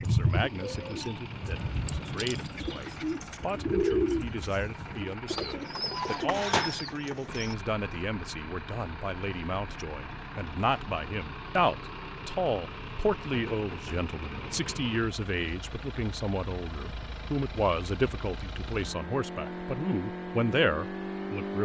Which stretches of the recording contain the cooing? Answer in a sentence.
The cooing can be heard from 0.0 to 7.5 s.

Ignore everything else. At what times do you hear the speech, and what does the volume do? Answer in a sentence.
The speech can be heard from 0.0 to 21.5 s, getting louder.